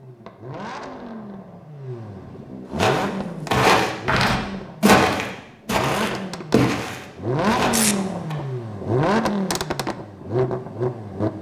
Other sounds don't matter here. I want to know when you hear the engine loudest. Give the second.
9 s.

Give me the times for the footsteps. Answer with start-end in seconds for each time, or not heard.
2.8-8.3.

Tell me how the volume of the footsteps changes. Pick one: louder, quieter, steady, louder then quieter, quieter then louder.
quieter.